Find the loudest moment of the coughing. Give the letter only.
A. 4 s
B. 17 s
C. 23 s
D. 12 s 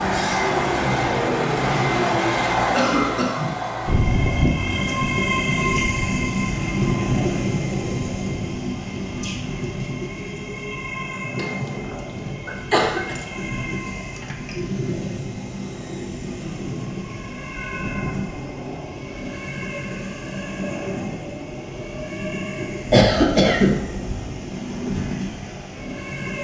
C.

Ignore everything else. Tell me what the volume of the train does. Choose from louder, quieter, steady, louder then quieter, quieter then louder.
quieter.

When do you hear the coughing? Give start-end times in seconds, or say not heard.
2.7-3.5, 11.3-13.2, 22.9-24.2.